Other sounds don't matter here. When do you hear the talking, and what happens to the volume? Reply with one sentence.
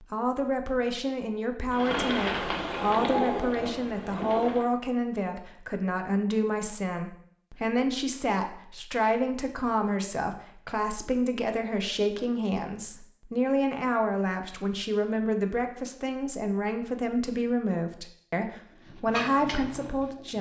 You can hear the talking from 0.0 to 20.3 s, at a steady volume.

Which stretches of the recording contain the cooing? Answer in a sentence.
You can hear the cooing from 1.7 to 4.7 s and from 18.7 to 20.3 s.